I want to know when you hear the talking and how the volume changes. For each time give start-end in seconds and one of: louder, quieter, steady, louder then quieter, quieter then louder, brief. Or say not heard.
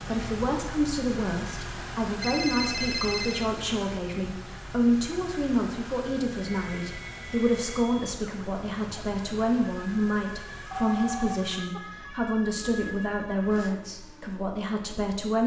0.0-15.4 steady.